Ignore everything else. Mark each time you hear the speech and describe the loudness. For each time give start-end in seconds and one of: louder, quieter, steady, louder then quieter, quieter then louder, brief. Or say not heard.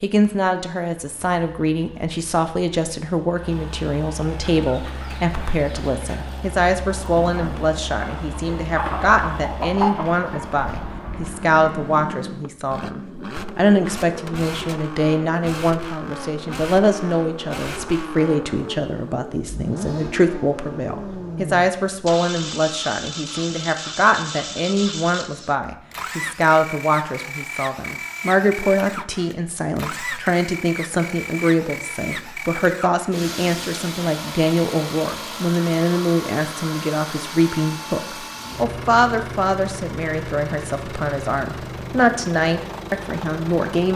0.0-43.9 steady.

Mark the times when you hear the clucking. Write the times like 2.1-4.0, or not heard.
4.4-11.9.